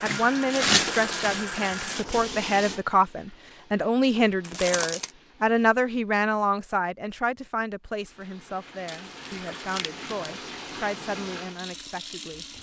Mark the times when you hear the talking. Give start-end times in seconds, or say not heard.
0.0-12.4.